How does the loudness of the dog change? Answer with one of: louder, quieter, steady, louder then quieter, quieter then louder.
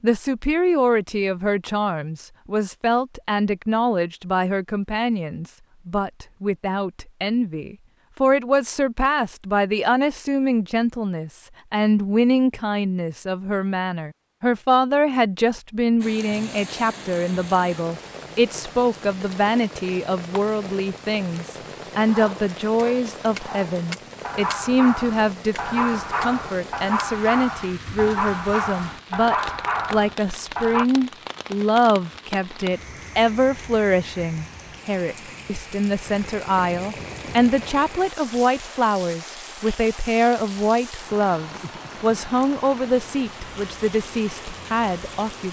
louder.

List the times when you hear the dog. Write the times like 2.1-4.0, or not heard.
22.1-30.9.